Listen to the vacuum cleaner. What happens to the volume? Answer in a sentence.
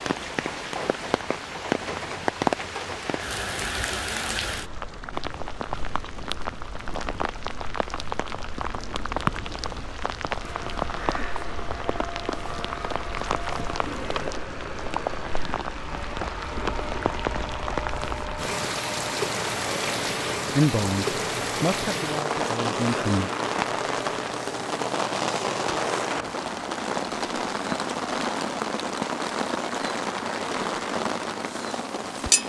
The volume of the vacuum cleaner stays about the same.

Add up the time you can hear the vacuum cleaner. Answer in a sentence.
You can hear the vacuum cleaner for 16 seconds altogether.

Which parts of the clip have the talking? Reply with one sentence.
You can hear the talking from 20.6 to 23.3 s.